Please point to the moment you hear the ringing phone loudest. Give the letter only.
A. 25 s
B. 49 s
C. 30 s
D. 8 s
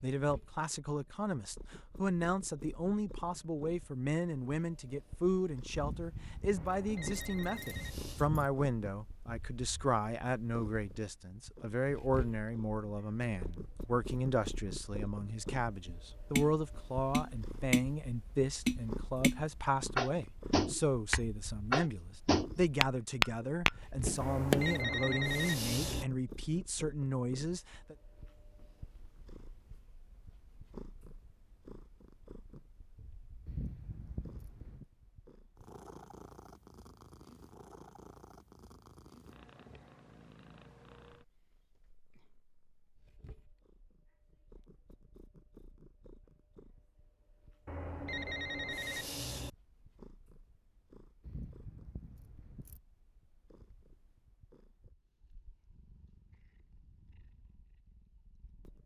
A.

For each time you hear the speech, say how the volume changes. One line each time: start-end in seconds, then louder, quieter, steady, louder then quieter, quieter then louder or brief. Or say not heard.
0.0-27.9 steady.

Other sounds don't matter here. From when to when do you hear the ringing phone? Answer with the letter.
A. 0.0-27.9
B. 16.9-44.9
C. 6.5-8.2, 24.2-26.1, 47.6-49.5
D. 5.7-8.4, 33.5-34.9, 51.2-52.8
C.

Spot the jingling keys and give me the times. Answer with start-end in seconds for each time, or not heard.
5.7-8.4, 33.5-34.9, 51.2-52.8.